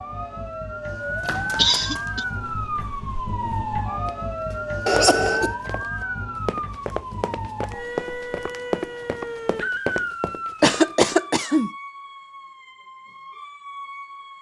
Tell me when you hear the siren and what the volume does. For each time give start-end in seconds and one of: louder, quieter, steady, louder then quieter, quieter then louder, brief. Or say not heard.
0.0-14.3 quieter.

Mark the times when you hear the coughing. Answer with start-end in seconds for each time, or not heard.
1.6-2.2, 4.8-5.5, 10.6-11.7.